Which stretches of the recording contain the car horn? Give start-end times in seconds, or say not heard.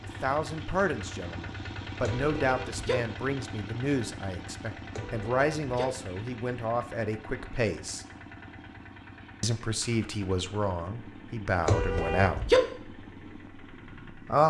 2.0-3.0, 4.9-5.8, 11.7-12.6.